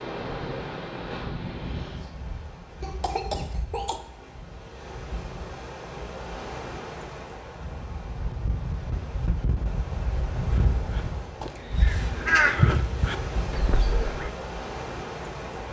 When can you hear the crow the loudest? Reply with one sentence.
The volume of the crow peaks at 12 seconds.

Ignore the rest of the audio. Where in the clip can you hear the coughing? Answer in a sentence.
The coughing can be heard from 2.8 to 4.0 s.